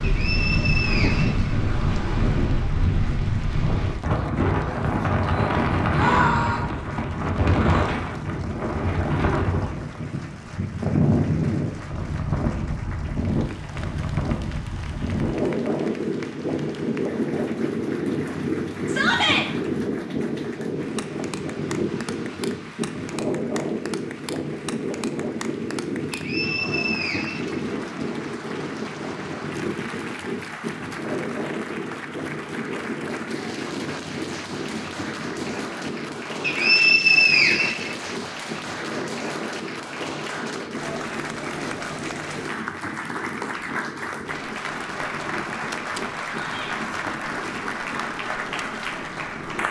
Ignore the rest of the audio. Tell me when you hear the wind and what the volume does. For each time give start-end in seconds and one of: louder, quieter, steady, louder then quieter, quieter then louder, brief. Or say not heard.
0.0-49.6 quieter.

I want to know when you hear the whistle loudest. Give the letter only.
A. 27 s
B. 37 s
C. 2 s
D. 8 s
B.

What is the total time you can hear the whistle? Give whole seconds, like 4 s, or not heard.
5 s.